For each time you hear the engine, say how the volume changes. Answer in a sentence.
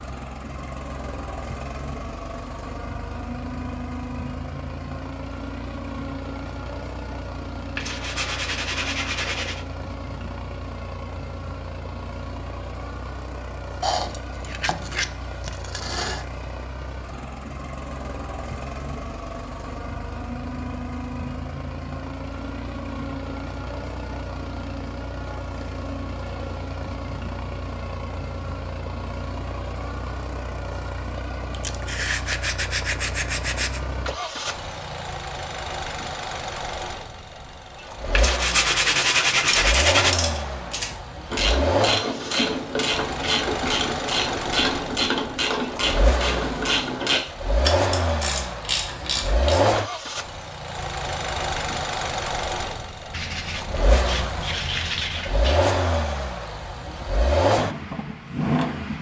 You can hear the engine from 0.0 to 58.9 s, getting louder.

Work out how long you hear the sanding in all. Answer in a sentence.
The sanding can be heard for 11 seconds in total.